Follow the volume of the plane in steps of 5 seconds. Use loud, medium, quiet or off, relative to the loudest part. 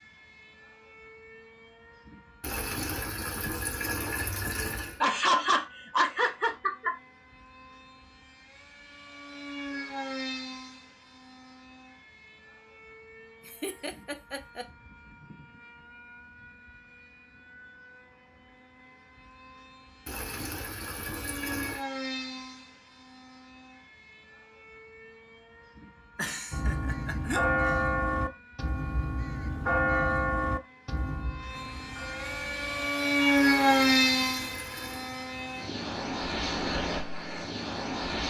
quiet, quiet, quiet, quiet, quiet, quiet, loud, medium.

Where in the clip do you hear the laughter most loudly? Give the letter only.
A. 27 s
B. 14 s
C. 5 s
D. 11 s
C.